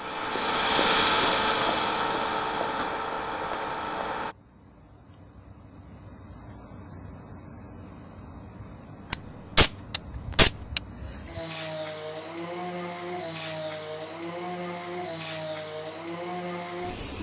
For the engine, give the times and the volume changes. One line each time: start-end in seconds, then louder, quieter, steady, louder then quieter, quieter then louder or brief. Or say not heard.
0.0-4.3 quieter.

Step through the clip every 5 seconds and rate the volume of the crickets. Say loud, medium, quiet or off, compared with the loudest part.
medium, loud, loud, loud.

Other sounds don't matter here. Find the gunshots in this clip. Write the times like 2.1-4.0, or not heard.
9.1-10.8.